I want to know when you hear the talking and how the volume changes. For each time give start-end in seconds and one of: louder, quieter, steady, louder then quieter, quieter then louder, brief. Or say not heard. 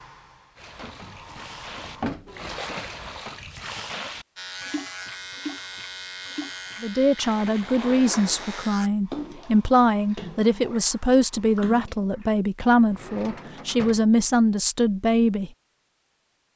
6.8-15.5 steady.